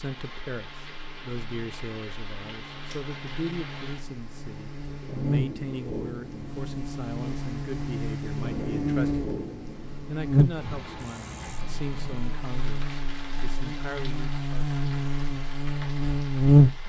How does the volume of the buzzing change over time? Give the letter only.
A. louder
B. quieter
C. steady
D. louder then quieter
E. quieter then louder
A.